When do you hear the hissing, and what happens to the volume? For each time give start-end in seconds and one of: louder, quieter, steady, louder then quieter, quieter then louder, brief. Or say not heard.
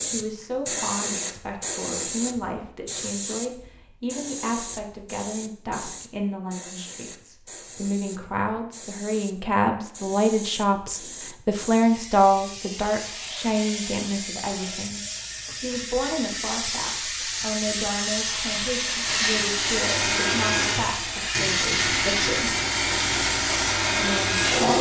0.0-24.7 quieter then louder.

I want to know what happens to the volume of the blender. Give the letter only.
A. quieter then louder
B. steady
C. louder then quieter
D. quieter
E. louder
B.